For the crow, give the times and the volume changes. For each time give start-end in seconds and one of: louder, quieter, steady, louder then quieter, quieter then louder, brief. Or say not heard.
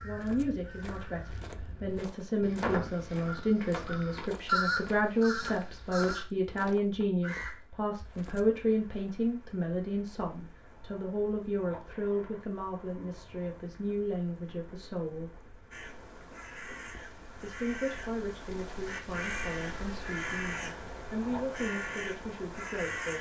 0.0-6.2 louder then quieter
7.0-7.6 brief
15.7-23.1 louder.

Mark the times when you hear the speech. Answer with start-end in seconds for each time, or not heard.
0.0-15.3, 17.4-23.1.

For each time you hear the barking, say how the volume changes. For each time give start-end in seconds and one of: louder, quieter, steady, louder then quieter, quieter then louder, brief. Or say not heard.
not heard.